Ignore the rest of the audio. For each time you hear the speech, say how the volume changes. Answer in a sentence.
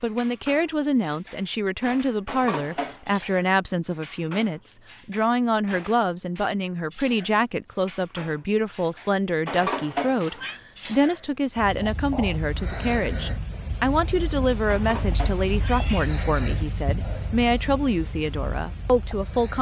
You can hear the speech from 0.0 to 19.5 s, at a steady volume.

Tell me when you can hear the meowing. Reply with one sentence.
You can hear the meowing from 2.2 to 3.0 s, from 9.4 to 10.6 s and from 14.7 to 16.1 s.